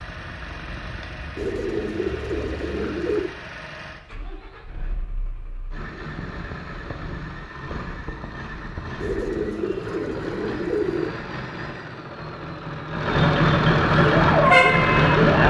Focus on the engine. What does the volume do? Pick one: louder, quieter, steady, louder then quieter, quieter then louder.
louder.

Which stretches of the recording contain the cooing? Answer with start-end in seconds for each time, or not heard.
1.4-3.4, 9.0-11.2.